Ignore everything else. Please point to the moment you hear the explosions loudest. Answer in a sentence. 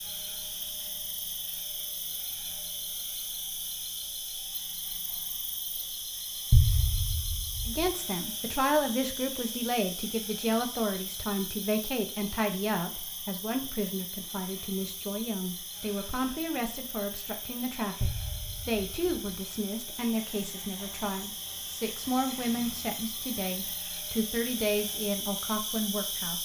The loudest moment of the explosions is at 7 seconds.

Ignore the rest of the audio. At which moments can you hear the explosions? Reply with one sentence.
The explosions can be heard from 6.5 to 7.9 s and from 18.0 to 19.4 s.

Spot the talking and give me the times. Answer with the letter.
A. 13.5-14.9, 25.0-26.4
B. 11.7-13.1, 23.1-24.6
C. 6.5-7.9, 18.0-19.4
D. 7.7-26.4
D.